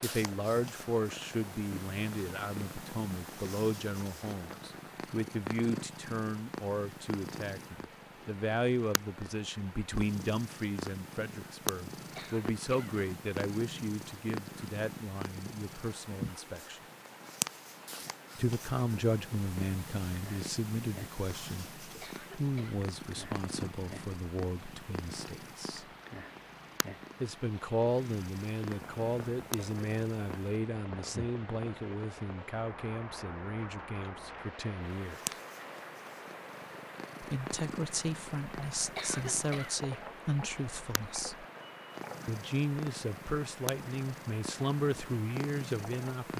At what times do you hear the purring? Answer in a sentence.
You can hear the purring from 0.0 to 30.6 s and from 34.9 to 46.3 s.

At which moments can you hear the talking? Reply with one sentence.
You can hear the talking from 0.0 to 16.8 s, from 18.4 to 25.9 s, from 27.2 to 35.4 s, from 37.2 to 41.5 s and from 42.2 to 46.3 s.